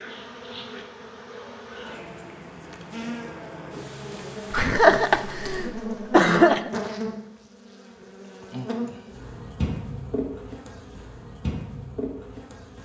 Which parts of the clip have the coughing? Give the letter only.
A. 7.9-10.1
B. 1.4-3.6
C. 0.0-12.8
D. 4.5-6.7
D.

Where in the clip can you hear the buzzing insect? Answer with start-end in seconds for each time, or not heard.
0.0-12.8.